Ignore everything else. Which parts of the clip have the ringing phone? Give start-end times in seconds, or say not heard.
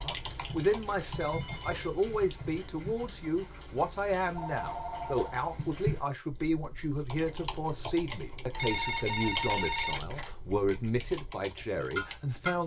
1.0-1.9, 4.3-6.0, 8.6-10.3.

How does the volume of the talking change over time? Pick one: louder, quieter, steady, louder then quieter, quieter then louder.
steady.